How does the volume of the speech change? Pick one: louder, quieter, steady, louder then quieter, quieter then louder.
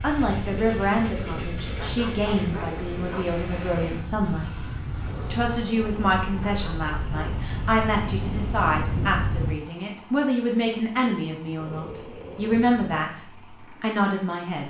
steady.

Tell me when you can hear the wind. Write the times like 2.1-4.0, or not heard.
0.0-9.6.